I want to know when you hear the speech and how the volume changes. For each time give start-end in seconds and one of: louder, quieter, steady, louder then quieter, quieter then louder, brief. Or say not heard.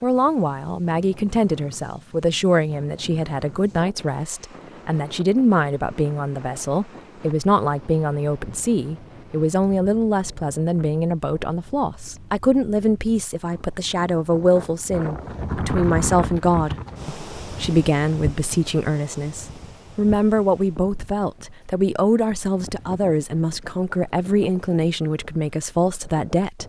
0.0-26.6 steady.